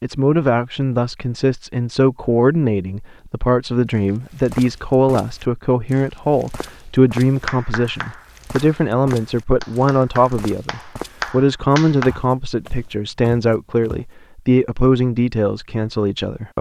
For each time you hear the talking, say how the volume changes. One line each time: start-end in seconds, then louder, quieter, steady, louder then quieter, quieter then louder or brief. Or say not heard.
0.0-16.5 steady.